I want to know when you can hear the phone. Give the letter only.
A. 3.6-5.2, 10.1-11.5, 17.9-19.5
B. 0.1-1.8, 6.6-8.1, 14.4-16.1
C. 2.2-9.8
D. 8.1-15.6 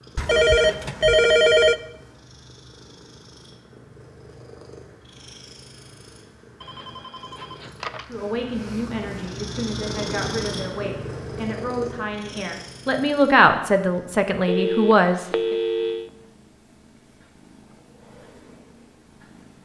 B.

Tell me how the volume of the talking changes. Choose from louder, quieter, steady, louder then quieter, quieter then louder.
louder.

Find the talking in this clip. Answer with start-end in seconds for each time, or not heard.
8.1-15.6.